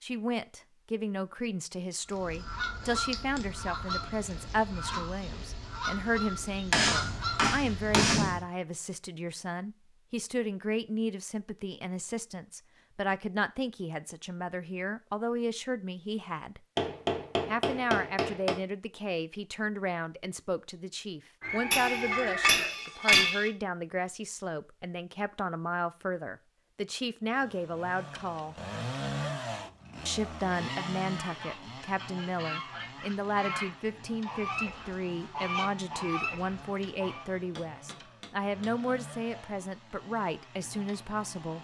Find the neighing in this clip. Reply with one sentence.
The neighing can be heard from 21.4 to 22.7 s.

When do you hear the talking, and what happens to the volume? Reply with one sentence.
The talking can be heard from 0.0 to 16.6 s, at a steady volume; from 17.4 to 28.6 s, at a steady volume; and from 30.1 to 41.5 s, at a steady volume.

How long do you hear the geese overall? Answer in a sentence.
The geese can be heard for 13 seconds in total.